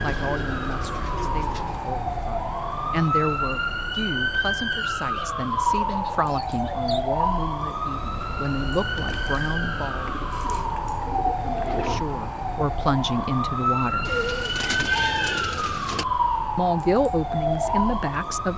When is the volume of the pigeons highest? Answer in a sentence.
The loudest moment of the pigeons is at 15 seconds.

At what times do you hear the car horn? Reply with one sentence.
You can't hear the car horn here.